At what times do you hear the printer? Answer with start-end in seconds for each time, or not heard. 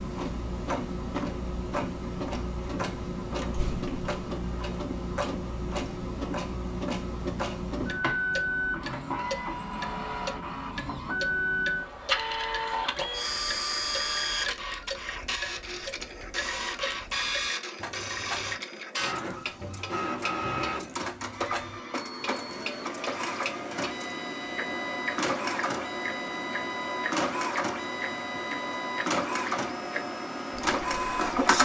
0.0-31.5.